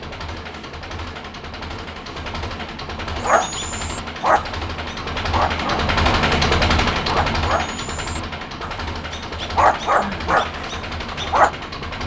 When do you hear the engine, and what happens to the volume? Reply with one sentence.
The engine can be heard from 0.0 to 12.0 s, getting louder then quieter.